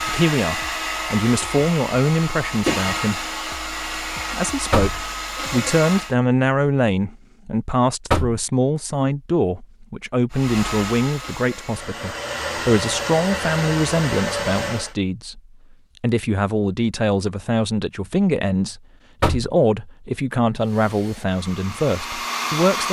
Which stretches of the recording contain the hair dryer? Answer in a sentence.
The hair dryer can be heard from 0.0 to 6.2 s, from 10.3 to 14.9 s and from 20.6 to 22.8 s.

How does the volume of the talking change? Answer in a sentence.
The loudness of the talking stays about the same.